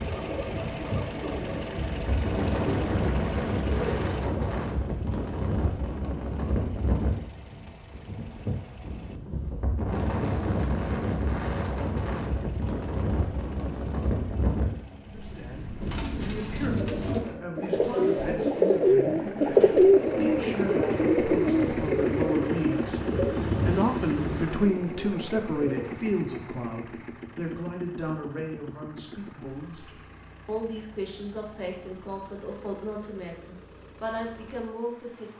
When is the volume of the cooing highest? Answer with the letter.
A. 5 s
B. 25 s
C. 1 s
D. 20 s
D.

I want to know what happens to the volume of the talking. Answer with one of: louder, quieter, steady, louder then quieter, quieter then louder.
louder then quieter.